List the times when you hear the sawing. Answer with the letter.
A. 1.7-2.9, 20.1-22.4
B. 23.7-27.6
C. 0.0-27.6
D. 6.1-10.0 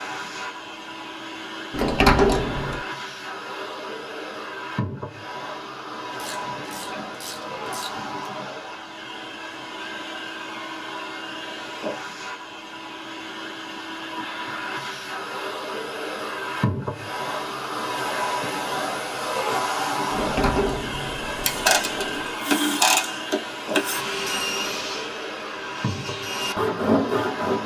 B.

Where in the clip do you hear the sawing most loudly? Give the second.
27 s.